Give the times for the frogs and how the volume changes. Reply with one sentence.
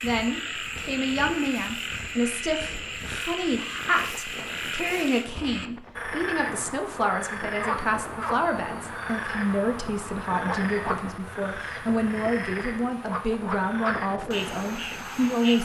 You can hear the frogs from 0.0 to 15.6 s, at a steady volume.